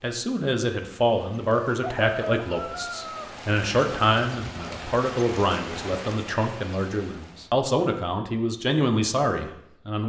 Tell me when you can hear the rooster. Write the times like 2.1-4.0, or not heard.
1.6-3.3.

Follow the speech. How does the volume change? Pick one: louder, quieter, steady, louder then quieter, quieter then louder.
steady.